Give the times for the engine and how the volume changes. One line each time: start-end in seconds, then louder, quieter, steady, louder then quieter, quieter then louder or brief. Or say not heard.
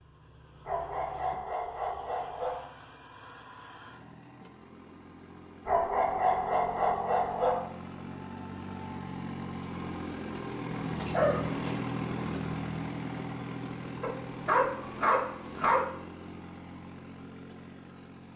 0.0-18.3 louder then quieter.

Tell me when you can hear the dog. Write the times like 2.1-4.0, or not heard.
0.7-2.6, 5.7-7.6, 10.8-11.8, 14.0-15.8.